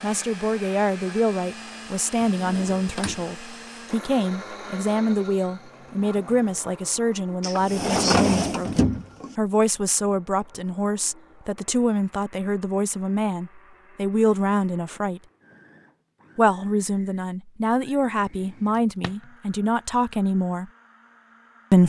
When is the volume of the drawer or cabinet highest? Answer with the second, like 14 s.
8 s.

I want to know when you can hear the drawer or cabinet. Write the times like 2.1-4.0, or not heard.
2.2-3.2, 7.4-9.3, 18.4-19.1.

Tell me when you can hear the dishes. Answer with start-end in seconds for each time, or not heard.
not heard.